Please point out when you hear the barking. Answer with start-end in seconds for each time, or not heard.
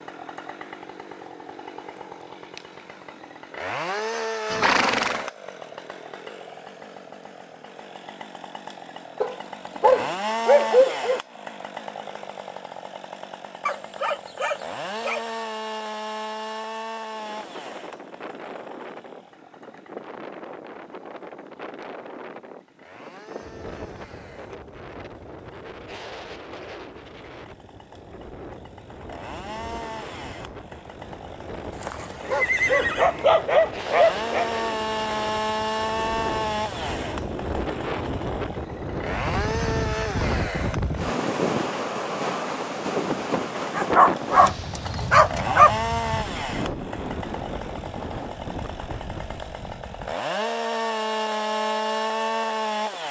9.2-11.2, 13.7-15.4, 31.9-34.5, 43.8-45.8.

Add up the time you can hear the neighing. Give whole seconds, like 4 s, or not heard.
2 s.